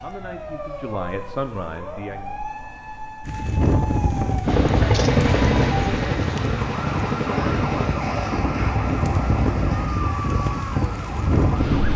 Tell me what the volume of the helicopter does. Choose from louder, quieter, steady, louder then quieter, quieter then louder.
quieter.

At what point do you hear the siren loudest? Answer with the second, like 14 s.
8 s.